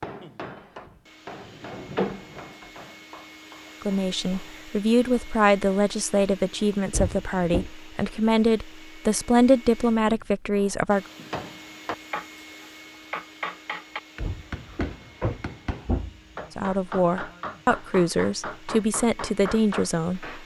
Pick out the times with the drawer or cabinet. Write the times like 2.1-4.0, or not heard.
0.6-2.7, 6.9-7.7, 14.2-16.2.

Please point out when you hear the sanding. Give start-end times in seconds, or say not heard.
not heard.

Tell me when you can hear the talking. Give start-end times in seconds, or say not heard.
3.8-11.1, 16.6-20.4.